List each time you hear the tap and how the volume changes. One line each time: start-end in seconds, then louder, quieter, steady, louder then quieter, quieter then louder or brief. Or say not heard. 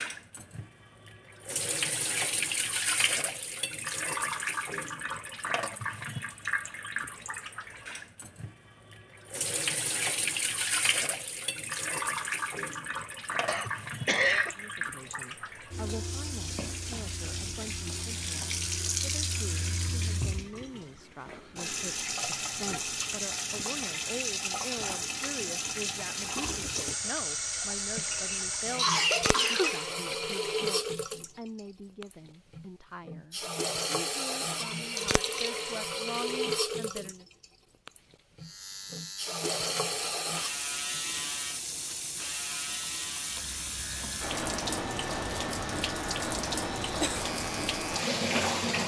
0.0-48.8 steady.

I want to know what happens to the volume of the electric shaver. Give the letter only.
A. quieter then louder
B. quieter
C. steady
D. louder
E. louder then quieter
C.